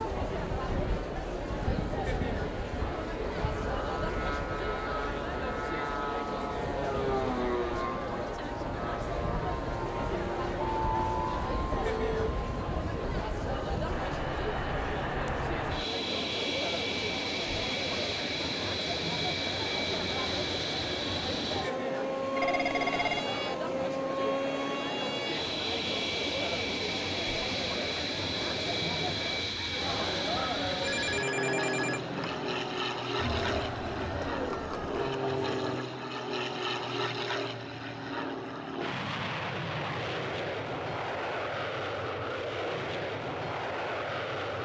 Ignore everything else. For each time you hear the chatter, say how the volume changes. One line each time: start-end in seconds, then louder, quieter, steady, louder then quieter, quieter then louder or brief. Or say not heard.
0.0-35.8 steady.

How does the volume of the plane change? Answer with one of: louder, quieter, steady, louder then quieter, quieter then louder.
steady.